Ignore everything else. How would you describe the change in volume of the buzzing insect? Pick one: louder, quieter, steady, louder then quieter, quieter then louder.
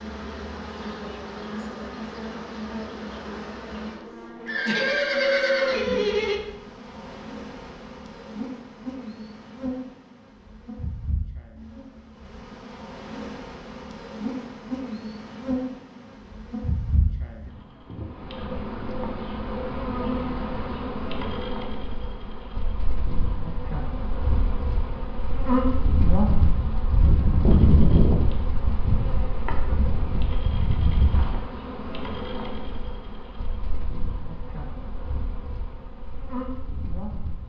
louder then quieter.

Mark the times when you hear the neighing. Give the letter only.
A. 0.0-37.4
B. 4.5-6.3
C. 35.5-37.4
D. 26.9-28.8
B.